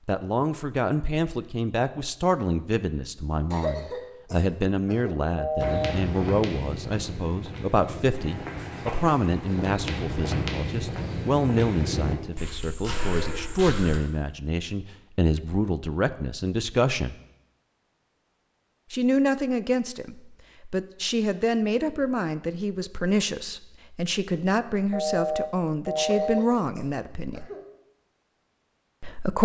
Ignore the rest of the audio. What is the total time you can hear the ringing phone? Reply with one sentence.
The ringing phone can be heard for 2 seconds in total.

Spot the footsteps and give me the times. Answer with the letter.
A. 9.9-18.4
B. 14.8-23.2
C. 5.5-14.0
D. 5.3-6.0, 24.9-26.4
C.